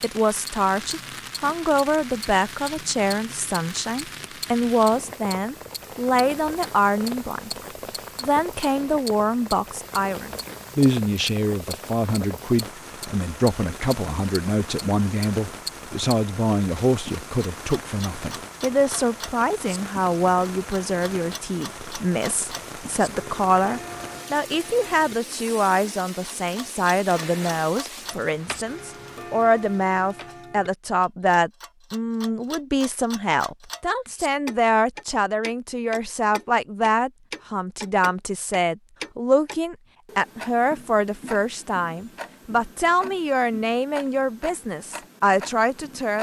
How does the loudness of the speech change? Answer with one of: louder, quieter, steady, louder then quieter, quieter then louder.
steady.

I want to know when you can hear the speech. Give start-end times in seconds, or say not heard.
0.0-7.6, 8.2-46.1.